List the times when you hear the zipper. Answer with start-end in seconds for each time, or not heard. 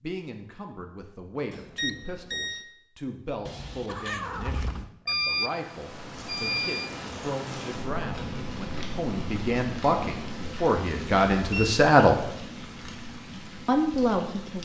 not heard.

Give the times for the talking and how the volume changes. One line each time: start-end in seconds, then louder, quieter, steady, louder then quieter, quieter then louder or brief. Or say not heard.
0.0-12.2 louder
13.7-14.6 brief.